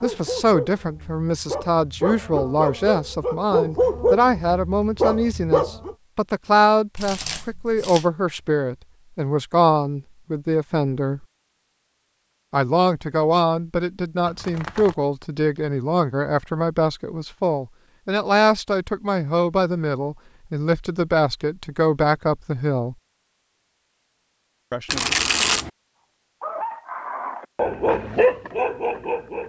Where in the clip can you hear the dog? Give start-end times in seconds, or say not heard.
0.0-6.0, 26.4-29.4.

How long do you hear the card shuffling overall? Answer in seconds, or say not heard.
3 s.